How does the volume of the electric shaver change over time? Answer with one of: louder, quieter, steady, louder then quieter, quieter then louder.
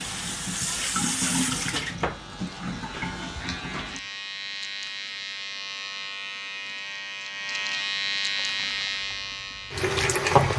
louder.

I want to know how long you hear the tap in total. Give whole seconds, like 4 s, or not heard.
6 s.